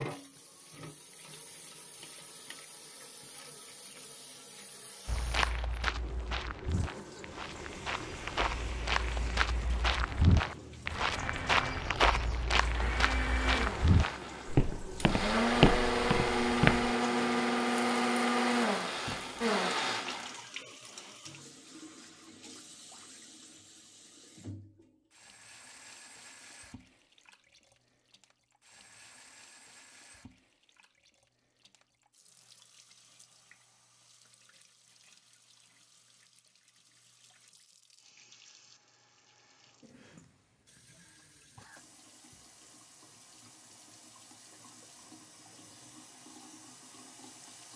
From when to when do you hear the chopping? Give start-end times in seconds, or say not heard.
not heard.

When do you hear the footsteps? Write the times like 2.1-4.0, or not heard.
5.0-16.9.